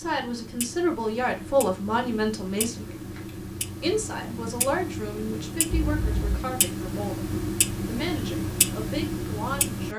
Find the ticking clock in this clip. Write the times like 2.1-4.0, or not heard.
0.0-9.9.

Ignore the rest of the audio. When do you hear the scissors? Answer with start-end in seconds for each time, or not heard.
2.7-3.4, 5.7-6.5.